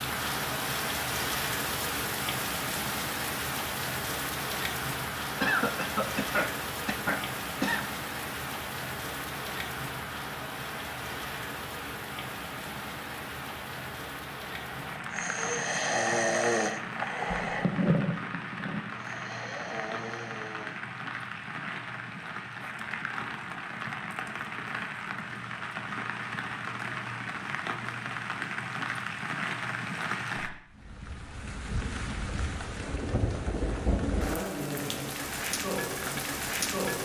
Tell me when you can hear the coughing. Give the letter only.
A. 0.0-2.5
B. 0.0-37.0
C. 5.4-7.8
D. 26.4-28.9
C.